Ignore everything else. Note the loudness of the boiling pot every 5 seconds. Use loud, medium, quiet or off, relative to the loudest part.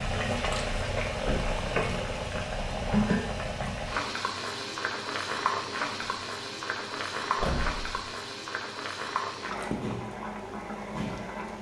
loud, loud, medium.